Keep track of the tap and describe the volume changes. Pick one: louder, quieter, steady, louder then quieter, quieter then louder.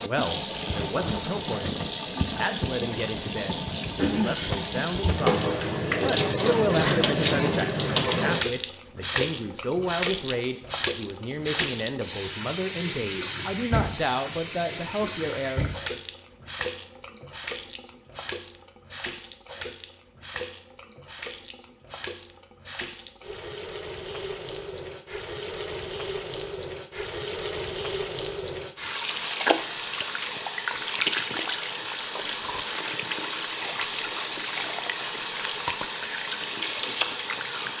quieter then louder.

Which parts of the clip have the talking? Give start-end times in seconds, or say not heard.
0.0-15.7.